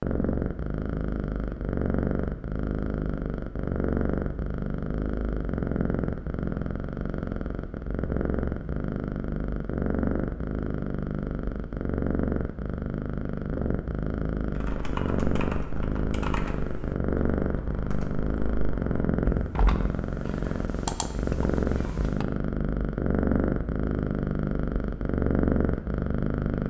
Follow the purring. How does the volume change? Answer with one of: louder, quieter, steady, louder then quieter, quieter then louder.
steady.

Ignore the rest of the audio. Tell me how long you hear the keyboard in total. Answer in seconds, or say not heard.
8 s.